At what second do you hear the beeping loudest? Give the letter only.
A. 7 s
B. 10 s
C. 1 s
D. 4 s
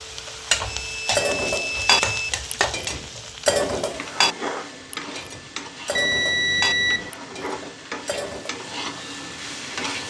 A.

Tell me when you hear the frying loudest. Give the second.
1 s.